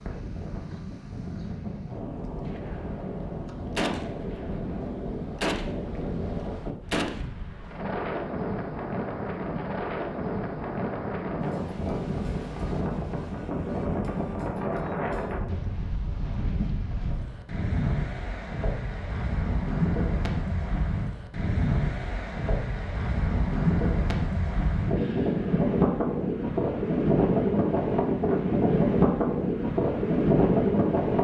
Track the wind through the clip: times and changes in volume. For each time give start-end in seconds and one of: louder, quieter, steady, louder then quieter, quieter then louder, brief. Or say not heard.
0.0-31.1 louder.